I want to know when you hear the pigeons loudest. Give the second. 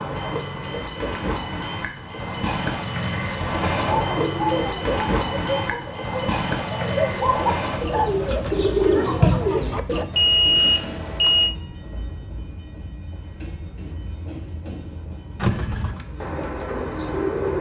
9 s.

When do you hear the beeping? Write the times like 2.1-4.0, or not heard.
10.1-11.6.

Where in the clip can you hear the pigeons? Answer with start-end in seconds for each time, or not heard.
3.9-10.1, 15.4-17.5.